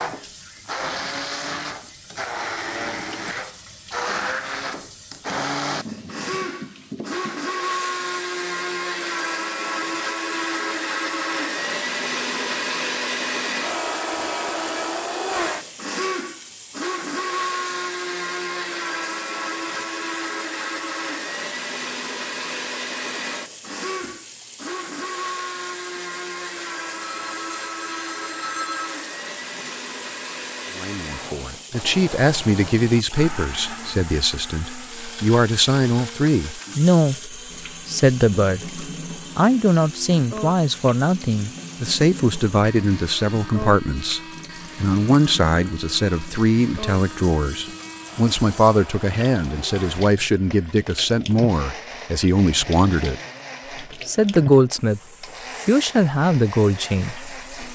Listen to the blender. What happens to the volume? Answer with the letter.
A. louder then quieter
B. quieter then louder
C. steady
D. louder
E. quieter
E.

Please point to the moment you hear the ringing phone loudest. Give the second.
29 s.